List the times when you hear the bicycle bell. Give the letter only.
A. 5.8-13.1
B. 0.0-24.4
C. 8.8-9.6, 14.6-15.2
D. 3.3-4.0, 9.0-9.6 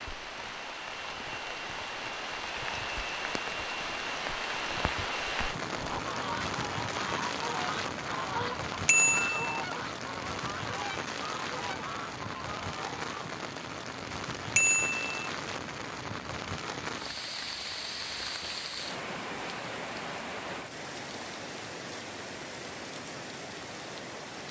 C.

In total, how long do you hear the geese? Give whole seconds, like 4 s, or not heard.
7 s.